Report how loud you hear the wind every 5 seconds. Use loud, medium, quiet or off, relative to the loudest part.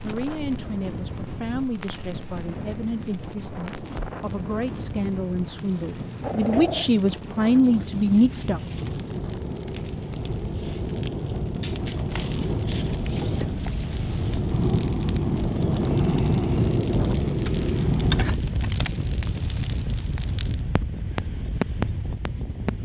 medium, medium, medium, loud, medium.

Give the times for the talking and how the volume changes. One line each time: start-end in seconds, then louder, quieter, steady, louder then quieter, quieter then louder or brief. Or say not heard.
0.0-8.6 louder.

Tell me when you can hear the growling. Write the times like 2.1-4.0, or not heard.
5.5-6.9, 11.6-12.4.